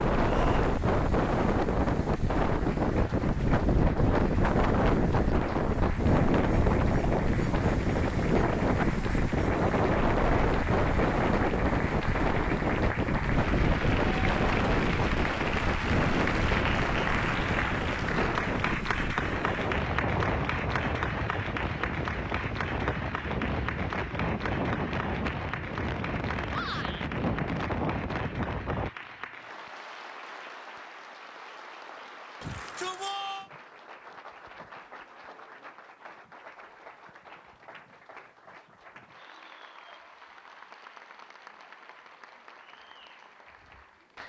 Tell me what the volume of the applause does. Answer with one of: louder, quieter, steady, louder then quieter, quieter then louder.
louder then quieter.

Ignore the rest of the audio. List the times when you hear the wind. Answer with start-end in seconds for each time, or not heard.
0.0-28.9.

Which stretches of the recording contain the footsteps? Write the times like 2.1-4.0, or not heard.
not heard.